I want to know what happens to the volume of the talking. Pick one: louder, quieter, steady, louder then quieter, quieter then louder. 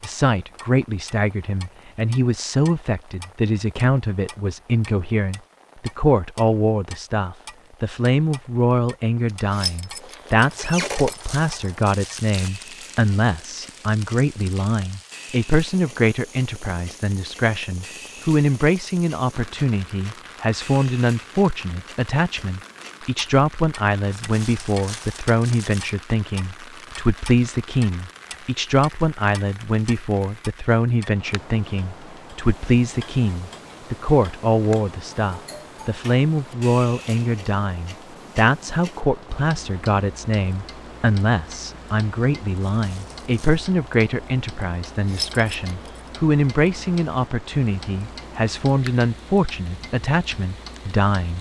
steady.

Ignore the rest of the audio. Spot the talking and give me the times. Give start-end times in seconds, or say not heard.
0.0-51.3.